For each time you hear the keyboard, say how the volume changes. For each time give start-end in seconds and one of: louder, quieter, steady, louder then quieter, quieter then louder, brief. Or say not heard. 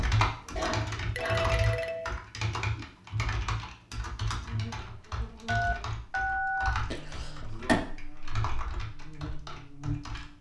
0.0-10.3 quieter.